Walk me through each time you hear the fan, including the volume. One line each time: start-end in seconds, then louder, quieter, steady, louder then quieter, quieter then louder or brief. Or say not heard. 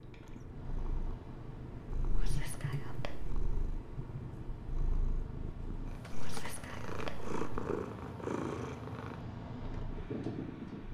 0.0-10.8 louder.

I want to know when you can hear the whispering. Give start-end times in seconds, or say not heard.
2.1-3.4, 6.1-7.3.